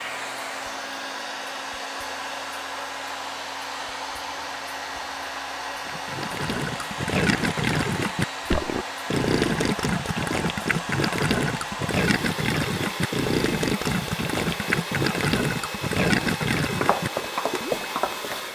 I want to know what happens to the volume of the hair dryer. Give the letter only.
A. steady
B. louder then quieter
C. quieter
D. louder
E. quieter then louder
A.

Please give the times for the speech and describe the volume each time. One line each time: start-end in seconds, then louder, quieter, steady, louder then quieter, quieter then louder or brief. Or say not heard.
not heard.